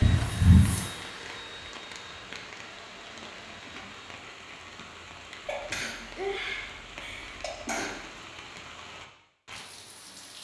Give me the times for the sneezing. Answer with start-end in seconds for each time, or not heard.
0.0-0.9, 5.5-8.0.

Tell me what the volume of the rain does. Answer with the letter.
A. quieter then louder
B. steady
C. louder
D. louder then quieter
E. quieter
B.